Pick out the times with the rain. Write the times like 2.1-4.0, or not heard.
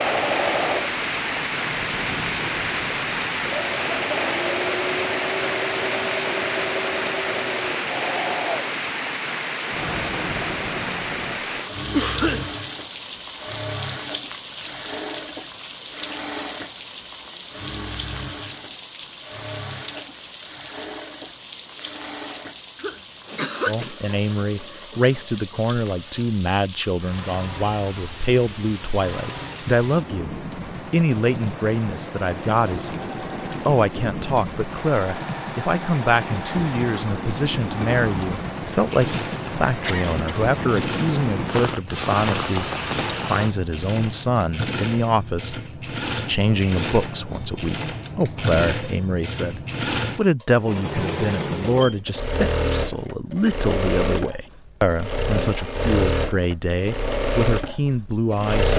0.0-43.5.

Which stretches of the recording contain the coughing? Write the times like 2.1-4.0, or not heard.
11.9-12.4, 22.8-23.9, 39.9-40.4.